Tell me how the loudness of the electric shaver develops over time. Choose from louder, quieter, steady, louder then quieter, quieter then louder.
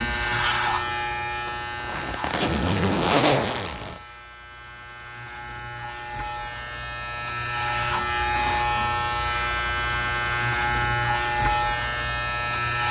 quieter then louder.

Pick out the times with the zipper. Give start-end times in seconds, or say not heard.
1.4-4.0.